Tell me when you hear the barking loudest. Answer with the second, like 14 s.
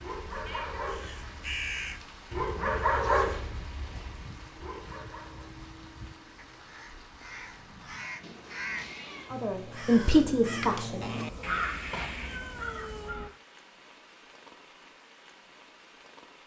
3 s.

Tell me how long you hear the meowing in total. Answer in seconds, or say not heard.
4 s.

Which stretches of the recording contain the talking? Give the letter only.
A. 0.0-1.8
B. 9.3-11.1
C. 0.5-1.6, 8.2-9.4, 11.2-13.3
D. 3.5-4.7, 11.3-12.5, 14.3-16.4
B.